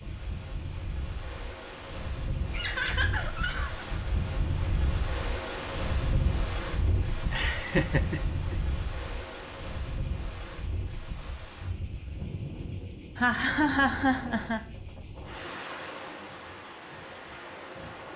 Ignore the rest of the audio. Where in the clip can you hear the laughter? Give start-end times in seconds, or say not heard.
2.5-3.9, 7.3-8.6, 13.2-14.6.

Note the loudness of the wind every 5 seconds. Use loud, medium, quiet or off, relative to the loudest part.
loud, loud, medium, medium.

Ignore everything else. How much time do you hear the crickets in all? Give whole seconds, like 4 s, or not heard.
18 s.